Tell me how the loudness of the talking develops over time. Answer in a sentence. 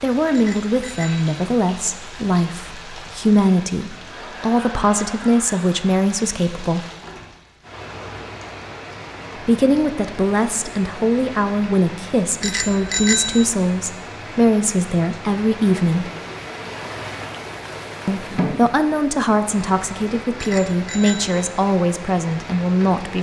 The volume of the talking stays about the same.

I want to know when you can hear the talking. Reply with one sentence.
The talking can be heard from 0.0 to 6.8 s, from 9.4 to 16.1 s and from 18.1 to 23.1 s.